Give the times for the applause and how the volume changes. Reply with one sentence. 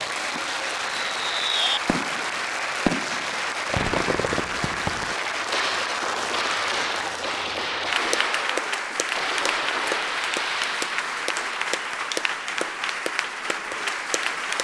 The applause can be heard from 0.0 to 14.5 s, at a steady volume.